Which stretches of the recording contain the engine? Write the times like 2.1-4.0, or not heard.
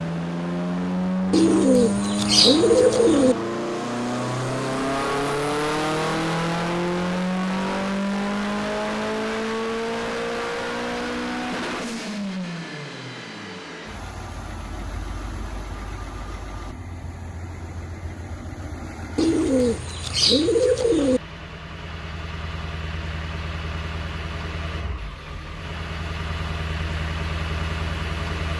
0.0-28.5.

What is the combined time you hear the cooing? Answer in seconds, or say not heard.
4 s.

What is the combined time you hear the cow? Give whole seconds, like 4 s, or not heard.
not heard.